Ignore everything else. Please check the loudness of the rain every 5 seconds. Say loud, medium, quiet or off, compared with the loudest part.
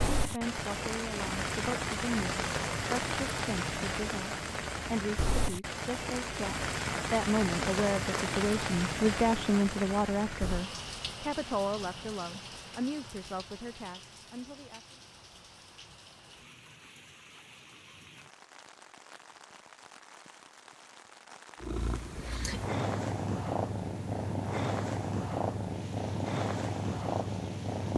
loud, loud, medium, quiet, quiet, quiet.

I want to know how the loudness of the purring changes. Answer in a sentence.
The volume of the purring stays about the same.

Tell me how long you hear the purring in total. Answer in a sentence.
The purring can be heard for 6 seconds in total.